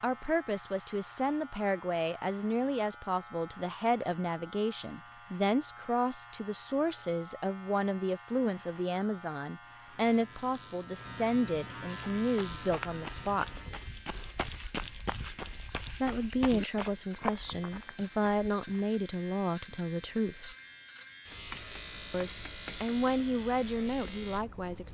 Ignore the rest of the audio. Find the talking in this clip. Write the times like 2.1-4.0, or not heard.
0.0-13.6, 16.0-20.6, 22.1-24.8.